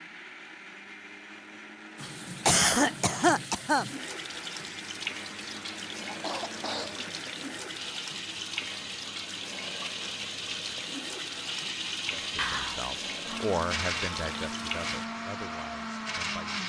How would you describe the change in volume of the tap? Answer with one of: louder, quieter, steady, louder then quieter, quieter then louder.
steady.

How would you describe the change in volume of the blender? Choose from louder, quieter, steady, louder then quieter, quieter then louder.
louder.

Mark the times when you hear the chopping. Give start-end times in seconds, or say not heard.
not heard.